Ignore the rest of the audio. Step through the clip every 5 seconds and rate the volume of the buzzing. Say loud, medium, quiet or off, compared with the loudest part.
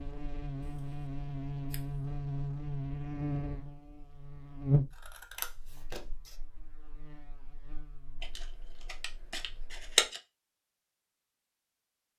loud, quiet, off.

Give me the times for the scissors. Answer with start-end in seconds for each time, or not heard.
0.6-2.0, 4.9-6.3, 8.2-10.2.